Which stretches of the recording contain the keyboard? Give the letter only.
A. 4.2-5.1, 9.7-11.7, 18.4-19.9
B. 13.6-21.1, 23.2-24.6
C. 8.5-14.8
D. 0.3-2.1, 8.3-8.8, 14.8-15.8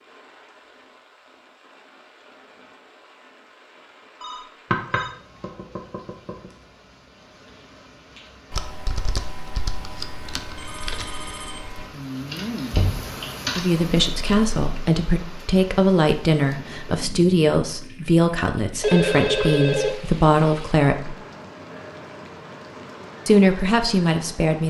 C.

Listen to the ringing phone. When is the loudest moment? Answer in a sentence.
The volume of the ringing phone peaks at 19 seconds.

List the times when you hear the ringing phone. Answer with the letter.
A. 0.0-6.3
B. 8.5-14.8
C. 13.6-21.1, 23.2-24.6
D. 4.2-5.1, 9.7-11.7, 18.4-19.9
D.